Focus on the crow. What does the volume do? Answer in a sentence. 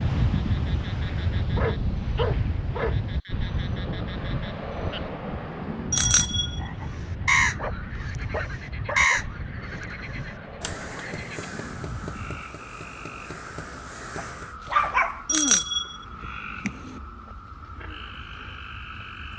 The loudness of the crow goes down.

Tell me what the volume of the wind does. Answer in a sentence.
The loudness of the wind goes down.